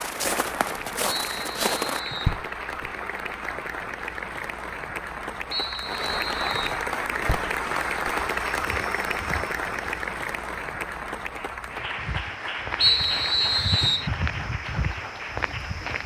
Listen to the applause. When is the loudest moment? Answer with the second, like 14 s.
8 s.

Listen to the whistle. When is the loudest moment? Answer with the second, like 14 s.
13 s.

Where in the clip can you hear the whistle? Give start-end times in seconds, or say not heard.
1.1-2.4, 5.5-6.8, 12.8-14.1.